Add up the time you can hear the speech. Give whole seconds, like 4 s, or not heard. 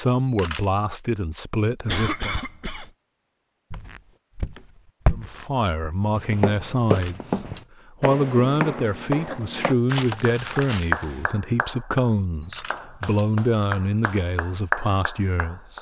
13 s.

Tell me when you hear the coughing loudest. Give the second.
2 s.